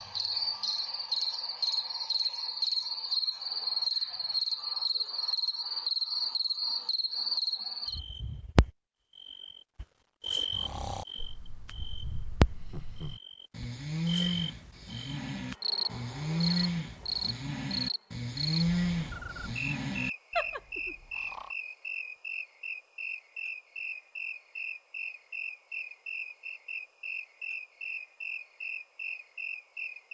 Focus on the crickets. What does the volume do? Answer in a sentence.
The volume of the crickets goes down.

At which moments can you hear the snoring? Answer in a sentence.
The snoring can be heard from 10.6 to 21.5 s.